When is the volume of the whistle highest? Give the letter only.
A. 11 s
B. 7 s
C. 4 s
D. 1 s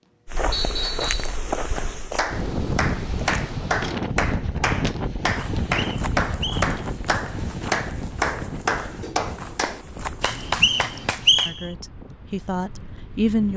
A.